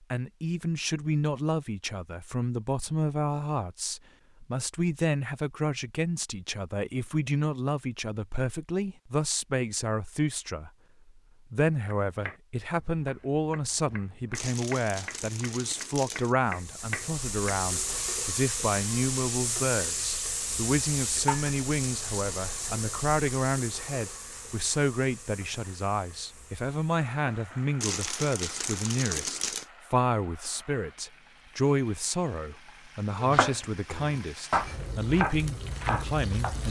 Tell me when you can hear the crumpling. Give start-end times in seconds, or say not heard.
14.3-16.4, 27.8-29.6.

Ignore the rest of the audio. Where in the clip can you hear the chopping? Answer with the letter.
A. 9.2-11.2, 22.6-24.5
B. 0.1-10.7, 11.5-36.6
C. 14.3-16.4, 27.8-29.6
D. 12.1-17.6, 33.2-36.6
D.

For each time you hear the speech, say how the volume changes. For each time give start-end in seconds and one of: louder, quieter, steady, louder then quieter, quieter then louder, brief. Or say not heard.
0.1-10.7 steady
11.5-36.6 steady.